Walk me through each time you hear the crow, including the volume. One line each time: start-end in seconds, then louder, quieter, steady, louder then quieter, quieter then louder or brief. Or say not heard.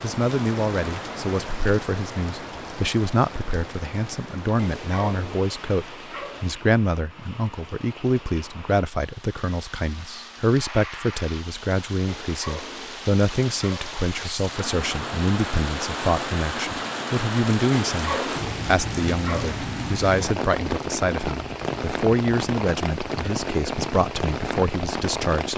not heard.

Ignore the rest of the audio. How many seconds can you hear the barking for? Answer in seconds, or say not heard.
6 s.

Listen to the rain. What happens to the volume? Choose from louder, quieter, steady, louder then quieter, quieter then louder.
quieter then louder.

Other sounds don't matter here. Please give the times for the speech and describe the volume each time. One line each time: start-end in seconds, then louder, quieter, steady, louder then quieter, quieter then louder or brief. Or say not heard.
0.0-25.5 steady.